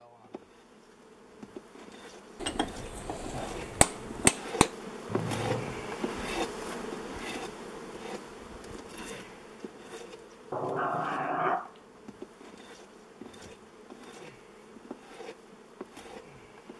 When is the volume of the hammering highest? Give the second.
4 s.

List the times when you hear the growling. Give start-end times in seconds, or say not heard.
5.0-5.7, 10.5-11.8.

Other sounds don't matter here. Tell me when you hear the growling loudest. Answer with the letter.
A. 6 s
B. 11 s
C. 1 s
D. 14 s
B.